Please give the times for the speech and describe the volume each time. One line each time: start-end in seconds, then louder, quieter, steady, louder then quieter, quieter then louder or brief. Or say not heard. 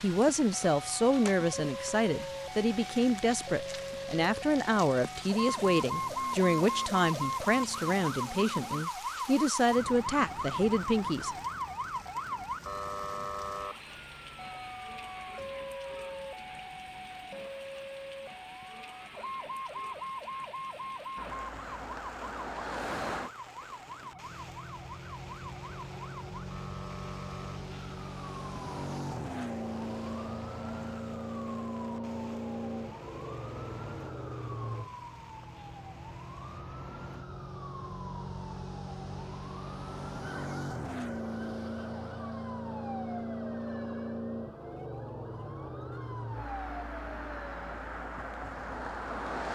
0.0-11.3 steady.